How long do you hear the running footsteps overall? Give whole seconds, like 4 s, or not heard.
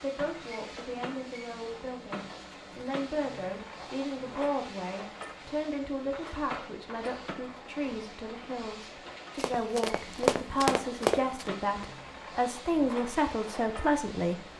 2 s.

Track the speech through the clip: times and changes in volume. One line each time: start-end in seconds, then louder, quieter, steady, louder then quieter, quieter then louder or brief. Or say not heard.
0.0-14.4 louder.